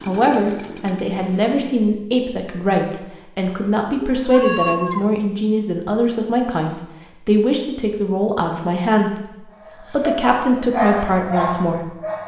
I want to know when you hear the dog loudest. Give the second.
11 s.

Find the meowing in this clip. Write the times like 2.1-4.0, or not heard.
3.9-5.1.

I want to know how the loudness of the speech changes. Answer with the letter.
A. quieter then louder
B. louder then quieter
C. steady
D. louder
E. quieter
C.